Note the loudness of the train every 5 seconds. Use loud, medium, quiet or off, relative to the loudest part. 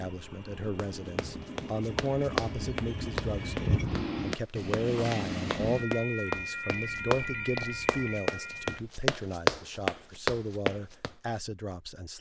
loud, loud, off.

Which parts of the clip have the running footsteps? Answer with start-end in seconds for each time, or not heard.
0.8-11.1.